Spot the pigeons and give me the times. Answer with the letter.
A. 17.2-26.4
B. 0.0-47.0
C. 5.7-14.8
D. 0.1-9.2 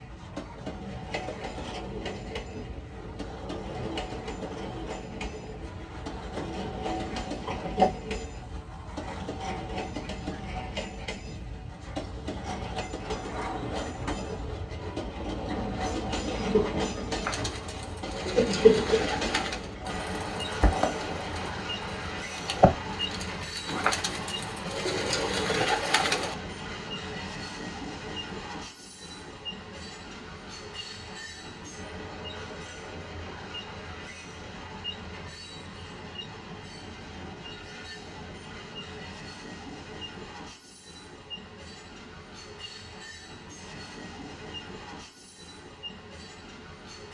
A.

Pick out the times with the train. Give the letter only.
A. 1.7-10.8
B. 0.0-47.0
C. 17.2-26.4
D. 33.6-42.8
B.